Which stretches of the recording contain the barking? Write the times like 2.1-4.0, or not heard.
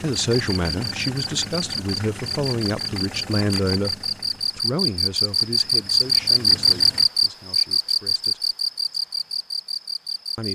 not heard.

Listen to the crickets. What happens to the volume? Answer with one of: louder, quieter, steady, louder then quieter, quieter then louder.
louder then quieter.